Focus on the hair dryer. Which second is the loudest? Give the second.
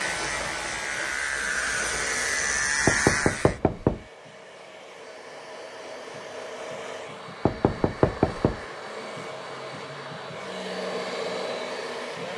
11 s.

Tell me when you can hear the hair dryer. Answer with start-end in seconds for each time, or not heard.
0.0-12.3.